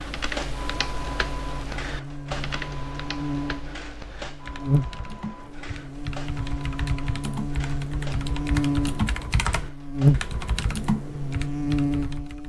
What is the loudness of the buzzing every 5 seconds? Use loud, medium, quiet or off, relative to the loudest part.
medium, medium, loud.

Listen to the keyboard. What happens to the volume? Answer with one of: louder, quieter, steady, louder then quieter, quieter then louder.
quieter then louder.